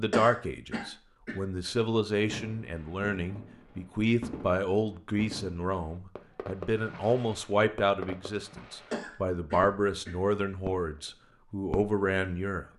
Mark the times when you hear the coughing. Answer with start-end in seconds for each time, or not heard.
0.1-1.4, 8.9-10.2.